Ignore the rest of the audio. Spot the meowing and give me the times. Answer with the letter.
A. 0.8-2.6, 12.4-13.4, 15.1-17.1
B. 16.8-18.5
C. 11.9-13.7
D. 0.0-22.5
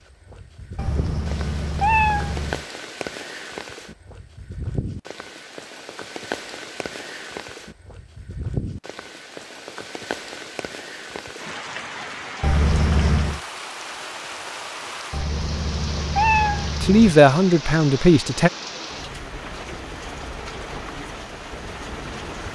A.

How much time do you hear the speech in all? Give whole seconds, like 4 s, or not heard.
2 s.